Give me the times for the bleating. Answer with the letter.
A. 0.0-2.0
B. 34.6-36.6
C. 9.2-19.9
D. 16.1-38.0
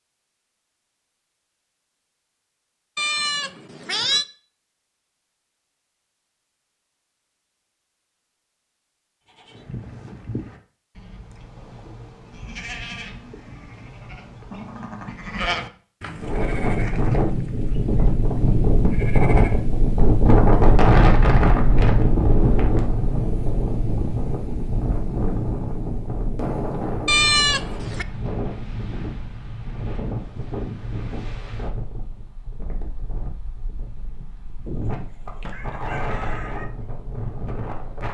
C.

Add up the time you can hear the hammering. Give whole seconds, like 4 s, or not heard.
not heard.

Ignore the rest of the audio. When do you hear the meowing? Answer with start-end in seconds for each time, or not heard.
3.0-4.2, 27.1-28.1.